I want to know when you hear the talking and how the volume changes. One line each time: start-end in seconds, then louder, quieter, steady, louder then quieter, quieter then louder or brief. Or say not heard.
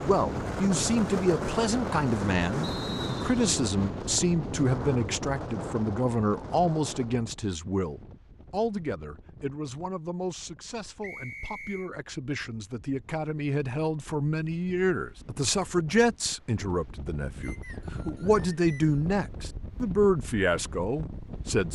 0.0-21.7 quieter then louder.